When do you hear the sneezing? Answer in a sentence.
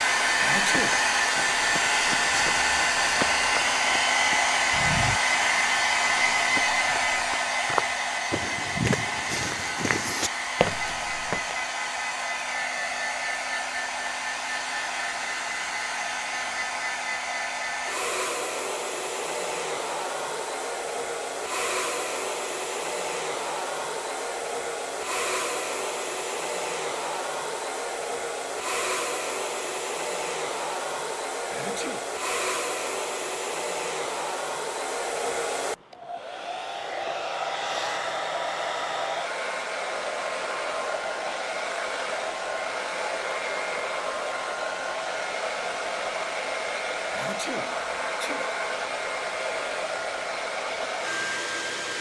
The sneezing can be heard from 0.4 to 1.1 s, from 31.5 to 32.0 s and from 47.1 to 48.5 s.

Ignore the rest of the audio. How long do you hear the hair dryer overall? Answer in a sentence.
The hair dryer can be heard for 52 seconds in total.